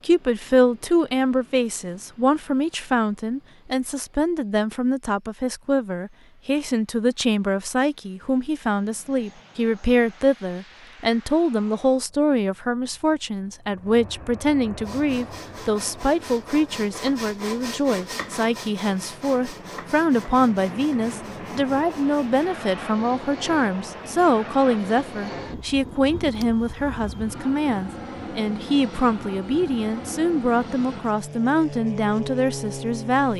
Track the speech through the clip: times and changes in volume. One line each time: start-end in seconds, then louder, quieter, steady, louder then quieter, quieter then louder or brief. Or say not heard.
0.1-33.3 steady.